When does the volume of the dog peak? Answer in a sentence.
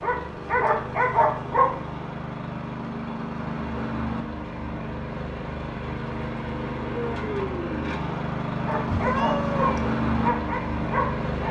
The loudest moment of the dog is at 1 second.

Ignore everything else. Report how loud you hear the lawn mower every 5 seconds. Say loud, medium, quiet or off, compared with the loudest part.
medium, loud, loud.